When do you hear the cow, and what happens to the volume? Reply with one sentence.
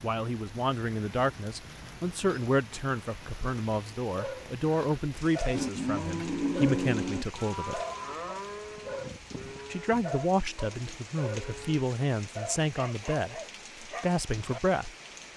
The cow can be heard from 5.5 to 11.8 s, getting quieter.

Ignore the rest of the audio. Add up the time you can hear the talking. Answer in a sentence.
You can hear the talking for 13 seconds altogether.